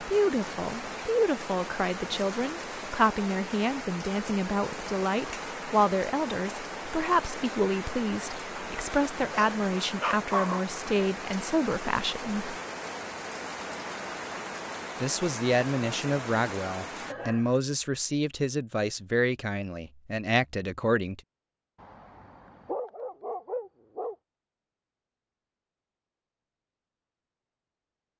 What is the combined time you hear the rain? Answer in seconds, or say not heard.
17 s.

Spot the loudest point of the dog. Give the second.
10 s.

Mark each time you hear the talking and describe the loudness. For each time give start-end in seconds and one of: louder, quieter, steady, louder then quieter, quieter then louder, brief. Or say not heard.
0.0-12.6 steady
15.0-21.2 steady.